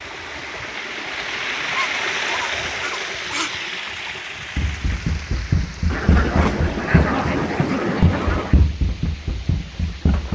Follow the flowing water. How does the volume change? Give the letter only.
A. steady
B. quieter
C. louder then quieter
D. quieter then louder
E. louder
B.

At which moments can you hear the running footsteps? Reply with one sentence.
The running footsteps can be heard from 4.5 to 10.3 s.